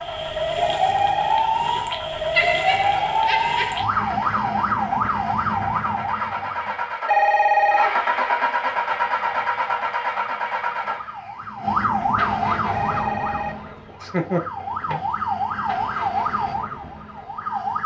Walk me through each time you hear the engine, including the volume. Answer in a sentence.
You can hear the engine from 0.0 to 17.8 s, getting louder then quieter.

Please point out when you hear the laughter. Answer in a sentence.
You can hear the laughter from 2.4 to 3.8 s and from 13.8 to 14.8 s.